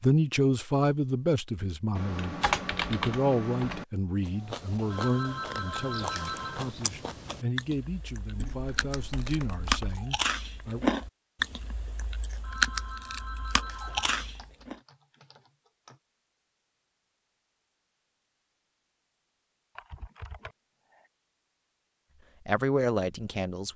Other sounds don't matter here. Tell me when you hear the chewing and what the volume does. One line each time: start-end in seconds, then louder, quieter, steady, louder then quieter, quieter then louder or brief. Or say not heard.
4.2-14.8 louder.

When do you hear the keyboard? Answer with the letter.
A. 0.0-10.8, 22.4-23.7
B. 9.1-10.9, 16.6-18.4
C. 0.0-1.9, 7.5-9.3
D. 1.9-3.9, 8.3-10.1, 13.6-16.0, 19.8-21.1
D.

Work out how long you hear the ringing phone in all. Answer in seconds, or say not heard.
4 s.